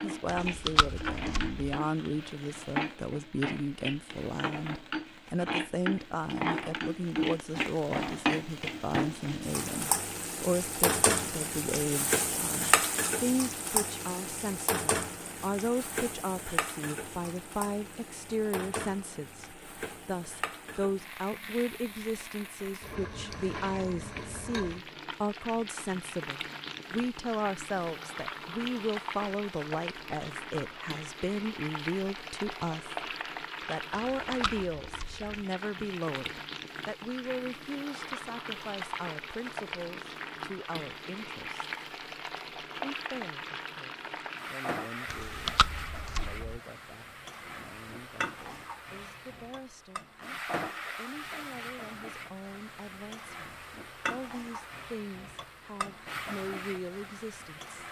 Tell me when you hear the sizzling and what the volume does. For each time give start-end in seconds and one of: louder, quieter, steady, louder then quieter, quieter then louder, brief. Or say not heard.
0.0-57.8 quieter.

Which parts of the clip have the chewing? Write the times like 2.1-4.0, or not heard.
0.2-1.8, 33.9-35.4, 45.1-46.6.